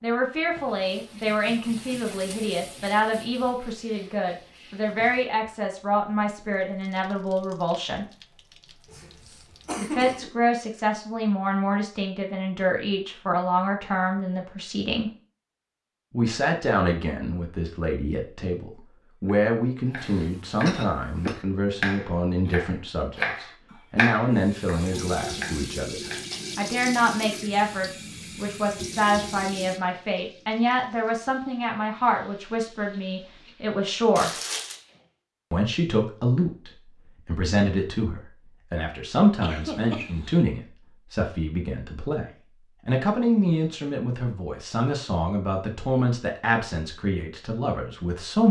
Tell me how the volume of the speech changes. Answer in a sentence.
The loudness of the speech stays about the same.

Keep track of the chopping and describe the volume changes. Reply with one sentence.
The loudness of the chopping goes up, then down.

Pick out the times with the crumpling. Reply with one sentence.
You can hear the crumpling from 34.1 to 34.8 s.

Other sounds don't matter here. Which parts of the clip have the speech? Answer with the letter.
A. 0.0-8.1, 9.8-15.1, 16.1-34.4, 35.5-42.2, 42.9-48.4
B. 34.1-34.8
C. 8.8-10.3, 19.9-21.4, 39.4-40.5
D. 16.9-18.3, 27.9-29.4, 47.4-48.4
A.